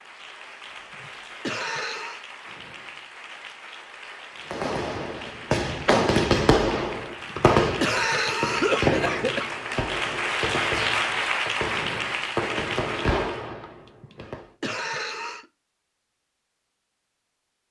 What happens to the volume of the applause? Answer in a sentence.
The loudness of the applause goes up.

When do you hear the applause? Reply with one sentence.
You can hear the applause from 0.0 to 13.5 s.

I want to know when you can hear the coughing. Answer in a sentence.
The coughing can be heard from 0.9 to 2.2 s, from 7.2 to 9.5 s and from 13.8 to 15.4 s.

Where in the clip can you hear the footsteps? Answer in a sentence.
You can't hear the footsteps here.